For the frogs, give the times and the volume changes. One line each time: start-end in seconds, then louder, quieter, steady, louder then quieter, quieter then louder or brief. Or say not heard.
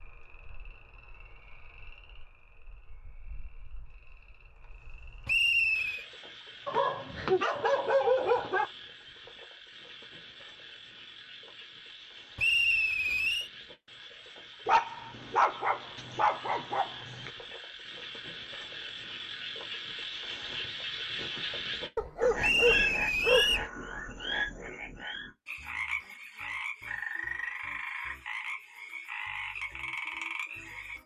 0.0-31.0 louder.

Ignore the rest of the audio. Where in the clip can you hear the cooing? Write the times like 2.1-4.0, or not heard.
not heard.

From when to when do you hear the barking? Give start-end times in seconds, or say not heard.
6.7-8.7, 14.7-17.3, 21.9-23.6.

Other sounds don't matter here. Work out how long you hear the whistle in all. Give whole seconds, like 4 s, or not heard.
3 s.